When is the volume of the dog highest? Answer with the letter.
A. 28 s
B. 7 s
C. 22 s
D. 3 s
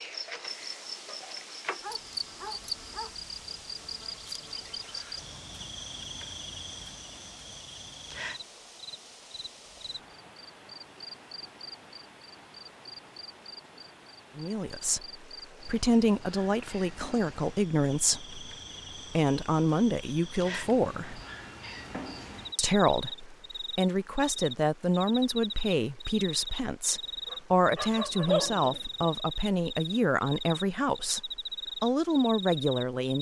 A.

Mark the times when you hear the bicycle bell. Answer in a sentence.
You can't hear the bicycle bell here.